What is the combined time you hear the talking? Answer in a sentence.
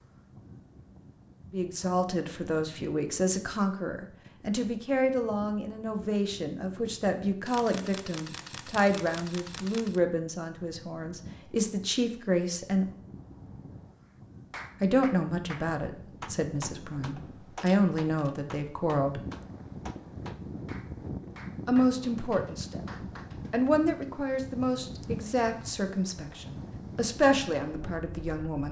The talking can be heard for 22 seconds in total.